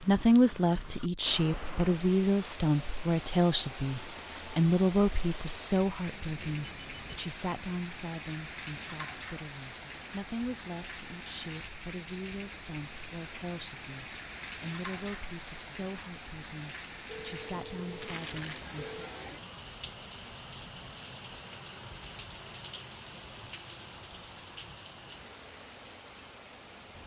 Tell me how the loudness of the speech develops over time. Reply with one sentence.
The loudness of the speech goes down.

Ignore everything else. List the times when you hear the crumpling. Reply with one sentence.
You can hear the crumpling from 18.0 to 18.6 s.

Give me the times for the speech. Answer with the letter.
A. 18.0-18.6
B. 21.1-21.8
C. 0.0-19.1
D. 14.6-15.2
C.